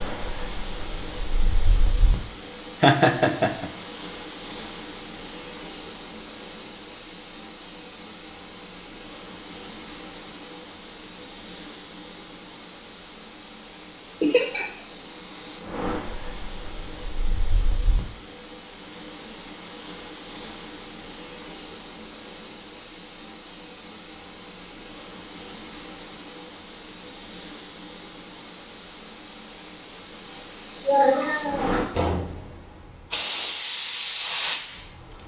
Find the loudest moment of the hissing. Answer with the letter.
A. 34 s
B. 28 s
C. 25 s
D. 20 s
A.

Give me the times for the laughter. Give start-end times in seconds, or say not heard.
2.8-3.6, 14.2-14.7, 30.9-31.8.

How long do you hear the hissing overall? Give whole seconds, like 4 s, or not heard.
35 s.